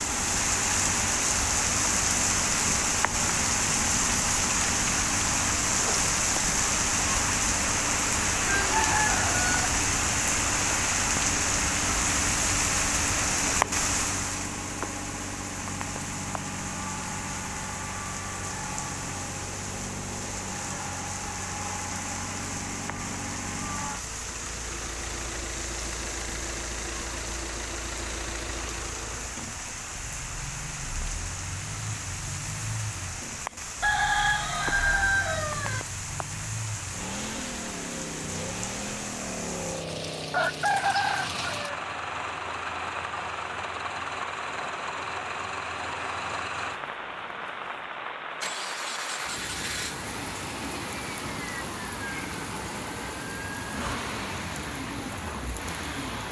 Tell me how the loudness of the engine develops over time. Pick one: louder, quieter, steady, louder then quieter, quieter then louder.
steady.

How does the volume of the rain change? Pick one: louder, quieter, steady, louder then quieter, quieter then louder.
quieter.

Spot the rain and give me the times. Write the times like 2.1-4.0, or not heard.
0.0-56.2.